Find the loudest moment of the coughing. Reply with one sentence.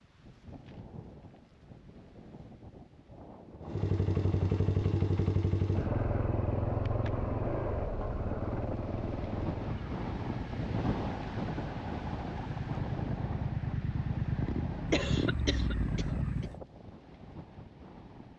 The loudest moment of the coughing is at 15 seconds.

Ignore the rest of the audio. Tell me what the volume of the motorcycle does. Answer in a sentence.
The volume of the motorcycle goes down, then up.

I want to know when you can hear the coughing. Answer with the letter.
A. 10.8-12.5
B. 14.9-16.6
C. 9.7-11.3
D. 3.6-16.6
B.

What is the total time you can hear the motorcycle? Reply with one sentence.
You can hear the motorcycle for 13 seconds altogether.